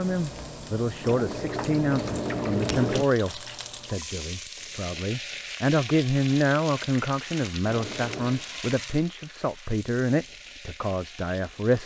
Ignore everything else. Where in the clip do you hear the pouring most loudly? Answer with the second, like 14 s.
3 s.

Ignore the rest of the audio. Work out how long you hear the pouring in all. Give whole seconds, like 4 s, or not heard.
3 s.